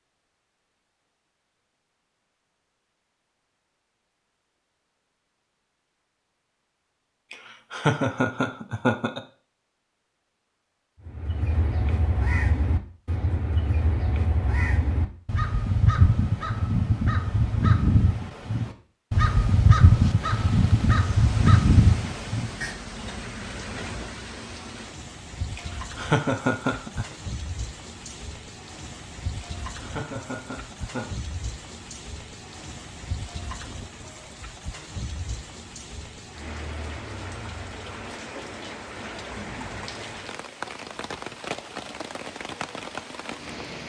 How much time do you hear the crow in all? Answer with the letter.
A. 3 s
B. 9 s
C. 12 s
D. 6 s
C.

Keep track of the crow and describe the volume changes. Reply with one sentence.
The loudness of the crow goes up.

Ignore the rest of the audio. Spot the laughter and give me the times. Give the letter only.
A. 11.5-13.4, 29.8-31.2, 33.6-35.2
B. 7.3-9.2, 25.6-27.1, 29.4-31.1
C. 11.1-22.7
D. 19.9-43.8
B.